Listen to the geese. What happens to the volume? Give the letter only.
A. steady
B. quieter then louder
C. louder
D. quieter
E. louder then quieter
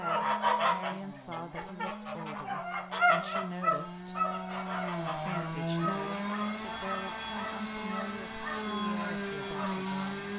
D.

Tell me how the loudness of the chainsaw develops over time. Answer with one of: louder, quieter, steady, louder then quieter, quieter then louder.
louder.